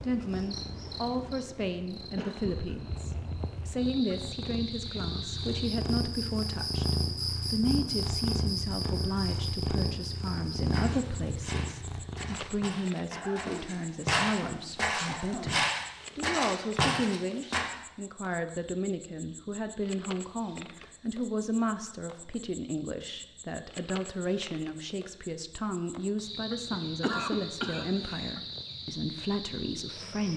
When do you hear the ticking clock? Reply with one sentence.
The ticking clock can't be heard in this clip.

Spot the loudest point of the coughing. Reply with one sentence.
The loudest moment of the coughing is at 27 seconds.